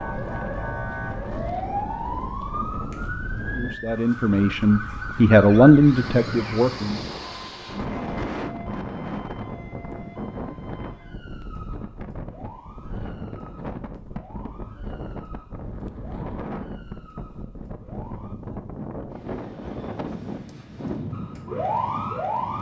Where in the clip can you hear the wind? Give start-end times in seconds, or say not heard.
0.0-22.5.